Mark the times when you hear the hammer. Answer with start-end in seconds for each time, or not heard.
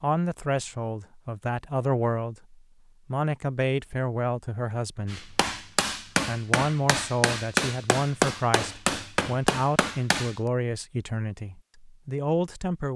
5.1-10.3.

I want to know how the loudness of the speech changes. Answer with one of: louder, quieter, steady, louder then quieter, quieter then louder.
steady.